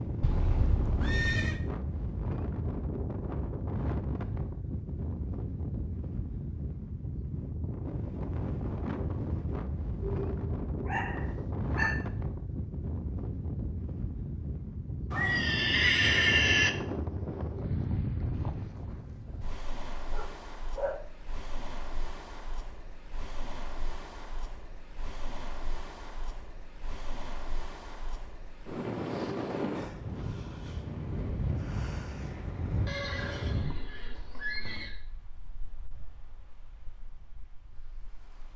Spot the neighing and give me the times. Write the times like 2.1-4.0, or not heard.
0.2-1.6, 15.1-16.7, 32.9-35.0.